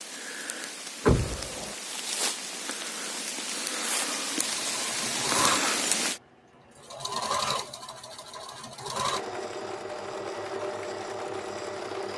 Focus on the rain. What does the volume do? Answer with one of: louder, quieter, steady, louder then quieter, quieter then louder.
louder.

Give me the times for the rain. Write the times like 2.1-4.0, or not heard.
0.0-6.2.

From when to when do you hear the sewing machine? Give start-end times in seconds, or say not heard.
4.3-12.1.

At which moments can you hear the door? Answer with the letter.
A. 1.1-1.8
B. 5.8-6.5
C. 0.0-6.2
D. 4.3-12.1
A.